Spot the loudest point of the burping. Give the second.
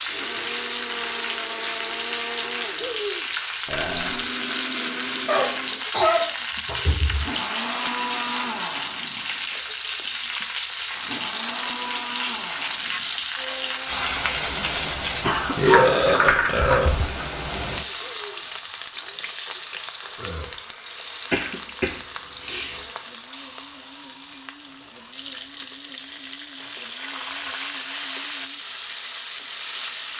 16 s.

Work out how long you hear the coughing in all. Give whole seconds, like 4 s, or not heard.
4 s.